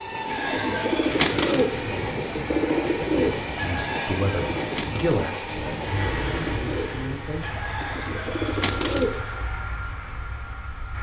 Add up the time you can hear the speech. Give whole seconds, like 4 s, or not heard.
4 s.